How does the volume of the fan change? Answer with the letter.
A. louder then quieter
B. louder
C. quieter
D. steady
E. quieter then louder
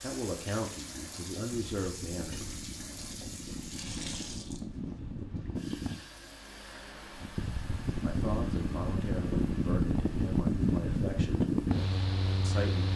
B.